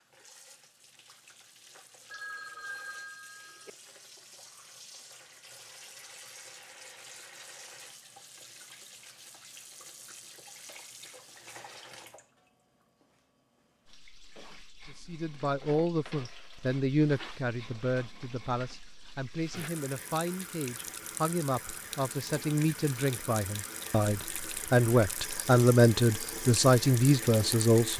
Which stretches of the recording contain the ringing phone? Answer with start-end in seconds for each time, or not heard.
2.1-3.7.